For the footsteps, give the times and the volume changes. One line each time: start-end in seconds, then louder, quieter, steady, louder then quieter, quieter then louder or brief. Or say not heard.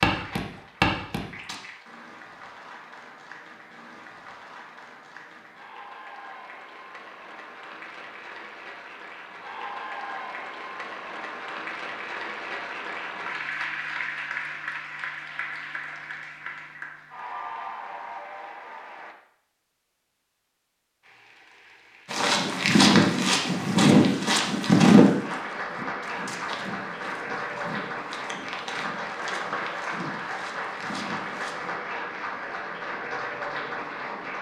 0.0-1.6 brief
22.1-31.8 quieter.